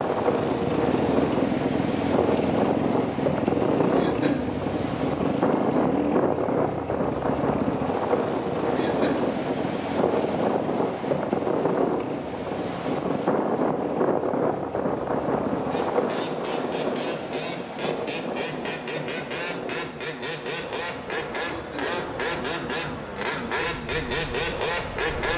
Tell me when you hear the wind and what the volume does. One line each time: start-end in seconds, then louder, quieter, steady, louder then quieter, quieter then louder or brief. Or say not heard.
0.0-25.3 quieter.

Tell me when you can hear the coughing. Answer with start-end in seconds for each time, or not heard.
4.0-4.5, 8.8-9.3, 21.6-22.0.